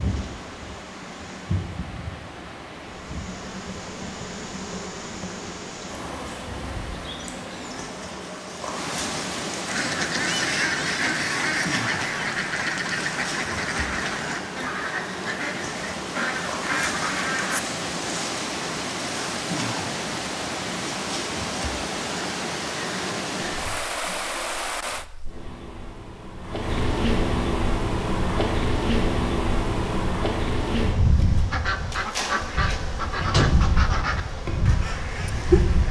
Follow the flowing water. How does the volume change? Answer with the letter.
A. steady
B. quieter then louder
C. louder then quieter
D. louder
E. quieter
D.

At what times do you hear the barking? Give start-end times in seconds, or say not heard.
not heard.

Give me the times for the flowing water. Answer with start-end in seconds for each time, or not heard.
0.0-25.1.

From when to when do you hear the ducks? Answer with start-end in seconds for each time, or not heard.
9.7-17.6, 31.5-35.8.